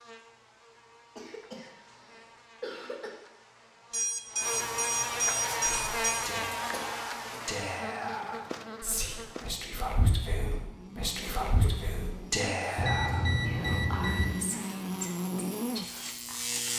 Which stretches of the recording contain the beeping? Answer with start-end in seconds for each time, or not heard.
3.9-6.2, 12.8-14.3.